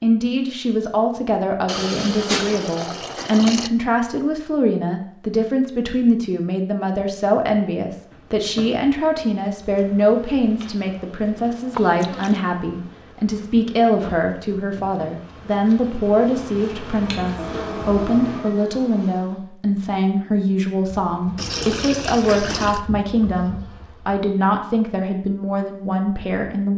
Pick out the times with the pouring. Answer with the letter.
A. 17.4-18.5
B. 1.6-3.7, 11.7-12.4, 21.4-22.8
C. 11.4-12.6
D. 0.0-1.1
B.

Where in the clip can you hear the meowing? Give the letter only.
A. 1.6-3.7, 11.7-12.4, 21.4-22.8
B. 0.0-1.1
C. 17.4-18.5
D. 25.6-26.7
C.